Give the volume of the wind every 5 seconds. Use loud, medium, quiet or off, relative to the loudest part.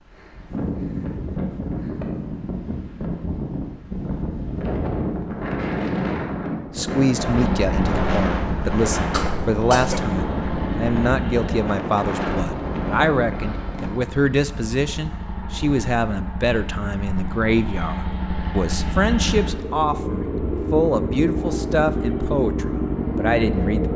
loud, loud, loud, off, off.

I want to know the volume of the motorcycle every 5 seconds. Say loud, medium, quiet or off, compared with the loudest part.
off, medium, medium, medium, loud.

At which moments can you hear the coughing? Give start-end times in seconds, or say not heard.
9.1-10.0.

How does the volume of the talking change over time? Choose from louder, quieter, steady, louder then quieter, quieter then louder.
steady.